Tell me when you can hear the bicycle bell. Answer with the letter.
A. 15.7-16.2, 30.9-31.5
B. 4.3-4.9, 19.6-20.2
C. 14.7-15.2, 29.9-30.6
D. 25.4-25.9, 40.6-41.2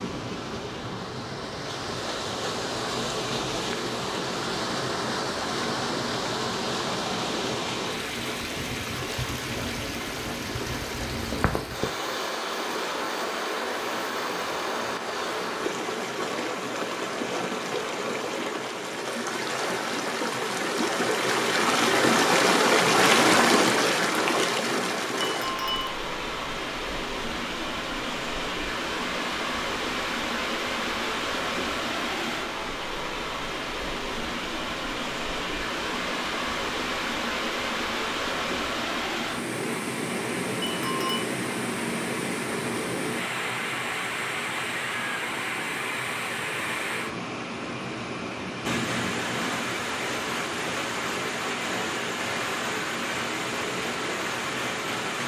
D.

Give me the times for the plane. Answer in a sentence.
You can't hear the plane here.